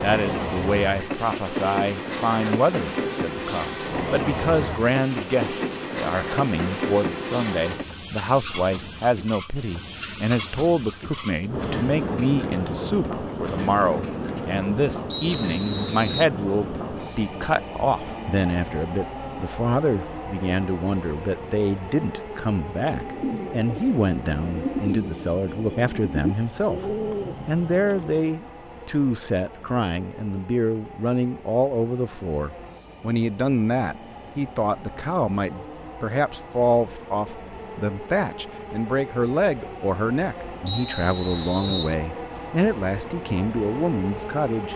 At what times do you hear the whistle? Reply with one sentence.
You can hear the whistle from 15.1 to 16.2 s and from 40.6 to 42.0 s.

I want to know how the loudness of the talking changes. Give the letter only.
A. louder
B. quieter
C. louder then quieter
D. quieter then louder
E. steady
E.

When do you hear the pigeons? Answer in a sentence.
You can hear the pigeons from 22.9 to 28.3 s.